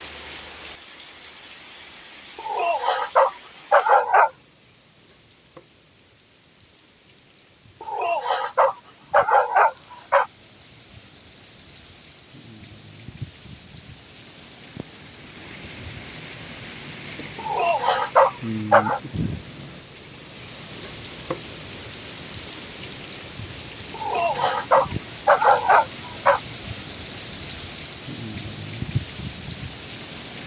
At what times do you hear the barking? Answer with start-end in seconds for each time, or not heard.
2.4-4.3, 7.8-10.2, 17.4-19.0, 23.9-26.4.